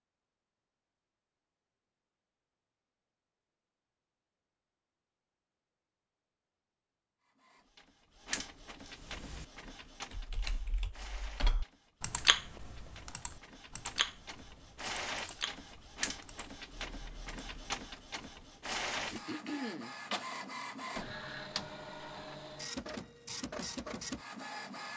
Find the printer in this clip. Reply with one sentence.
The printer can be heard from 7.2 to 24.9 s.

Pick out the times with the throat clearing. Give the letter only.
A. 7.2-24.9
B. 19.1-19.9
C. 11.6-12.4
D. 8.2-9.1
B.